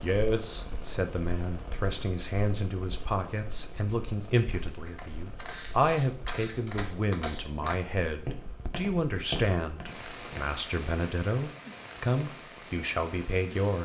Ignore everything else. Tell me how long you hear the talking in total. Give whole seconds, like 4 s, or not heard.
14 s.